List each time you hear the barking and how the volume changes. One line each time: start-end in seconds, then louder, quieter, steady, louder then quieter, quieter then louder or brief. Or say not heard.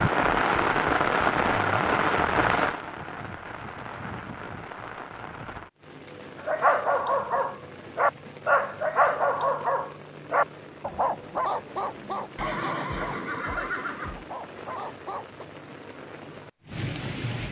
6.3-15.4 quieter.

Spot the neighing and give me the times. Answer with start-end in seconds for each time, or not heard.
12.3-14.2.